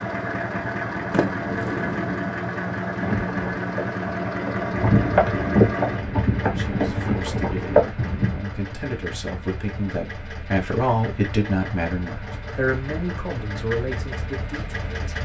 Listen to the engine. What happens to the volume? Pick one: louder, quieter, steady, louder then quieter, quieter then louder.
quieter.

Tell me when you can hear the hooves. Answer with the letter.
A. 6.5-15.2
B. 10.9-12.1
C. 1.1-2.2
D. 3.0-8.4
D.